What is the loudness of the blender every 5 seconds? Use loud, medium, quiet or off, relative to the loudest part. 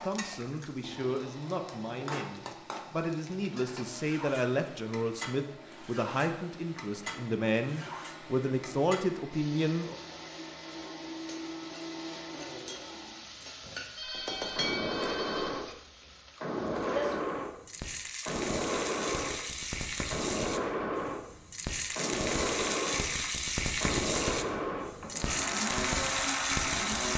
quiet, quiet, medium, loud, loud, loud.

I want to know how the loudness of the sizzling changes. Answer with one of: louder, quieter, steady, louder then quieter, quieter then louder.
louder.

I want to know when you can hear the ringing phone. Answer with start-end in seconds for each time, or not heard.
13.9-15.7.